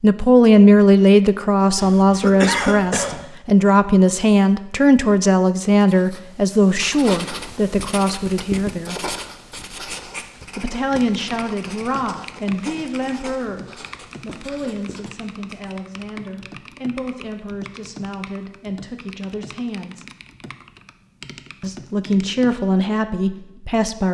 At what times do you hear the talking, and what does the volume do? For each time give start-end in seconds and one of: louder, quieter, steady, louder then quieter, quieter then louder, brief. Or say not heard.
0.0-8.9 quieter
10.6-20.1 quieter
21.6-24.0 brief.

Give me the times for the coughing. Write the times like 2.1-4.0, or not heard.
1.8-3.2.